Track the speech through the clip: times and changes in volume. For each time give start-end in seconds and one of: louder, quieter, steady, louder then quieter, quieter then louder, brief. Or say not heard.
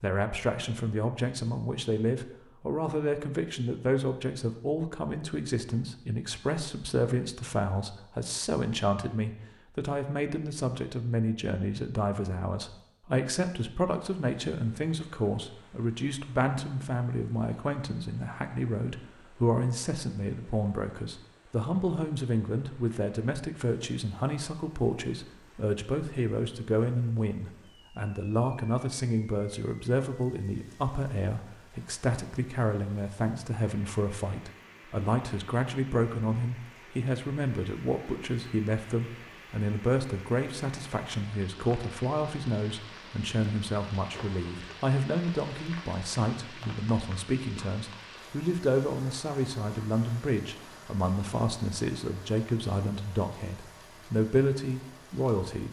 0.0-55.6 steady.